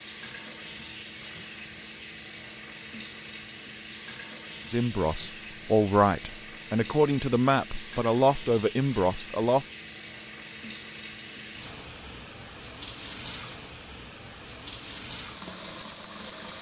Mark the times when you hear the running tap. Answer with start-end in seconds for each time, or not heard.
0.0-16.5.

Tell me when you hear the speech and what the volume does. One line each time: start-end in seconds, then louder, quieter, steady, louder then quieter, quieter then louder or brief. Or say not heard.
4.7-9.7 steady.